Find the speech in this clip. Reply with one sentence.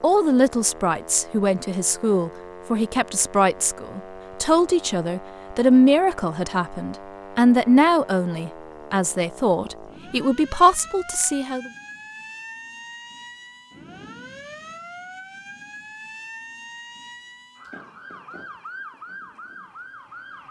The speech can be heard from 0.0 to 11.7 s.